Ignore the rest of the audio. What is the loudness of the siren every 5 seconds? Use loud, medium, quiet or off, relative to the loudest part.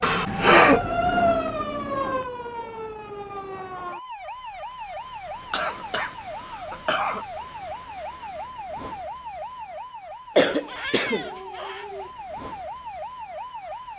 loud, medium, medium.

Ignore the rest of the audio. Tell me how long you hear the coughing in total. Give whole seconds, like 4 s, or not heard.
4 s.